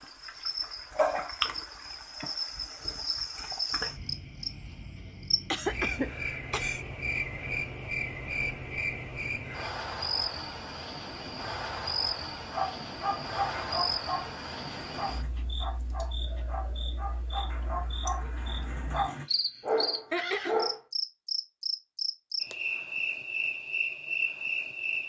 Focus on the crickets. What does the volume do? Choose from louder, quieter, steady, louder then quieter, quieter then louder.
quieter then louder.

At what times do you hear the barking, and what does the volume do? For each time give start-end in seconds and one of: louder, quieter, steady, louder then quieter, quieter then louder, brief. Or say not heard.
12.5-20.8 quieter then louder.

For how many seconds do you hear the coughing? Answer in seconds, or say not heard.
2 s.